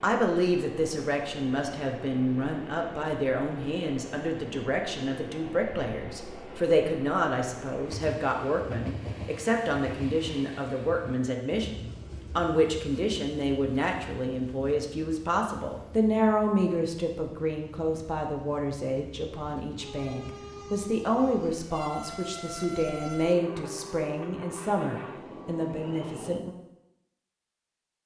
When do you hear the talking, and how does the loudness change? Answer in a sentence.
You can hear the talking from 0.0 to 26.6 s, at a steady volume.